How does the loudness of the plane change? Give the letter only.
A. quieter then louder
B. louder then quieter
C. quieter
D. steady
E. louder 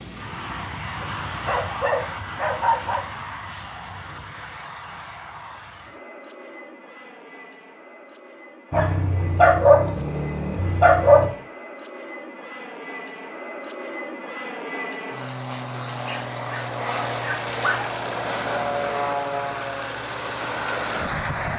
A.